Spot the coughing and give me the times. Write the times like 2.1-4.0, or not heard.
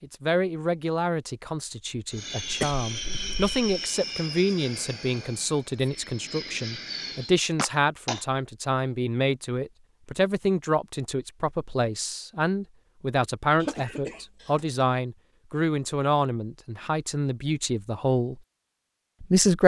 2.5-3.5, 7.5-8.2, 13.6-14.7.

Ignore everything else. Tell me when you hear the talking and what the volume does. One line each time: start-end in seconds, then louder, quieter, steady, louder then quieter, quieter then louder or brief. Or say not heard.
0.0-18.4 steady
19.2-19.6 brief.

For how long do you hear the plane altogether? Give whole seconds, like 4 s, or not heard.
5 s.